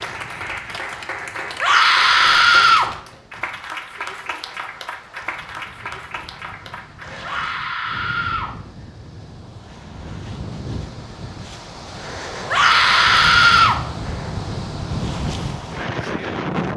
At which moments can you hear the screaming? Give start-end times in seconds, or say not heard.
1.6-2.9, 7.2-8.5, 12.5-13.8.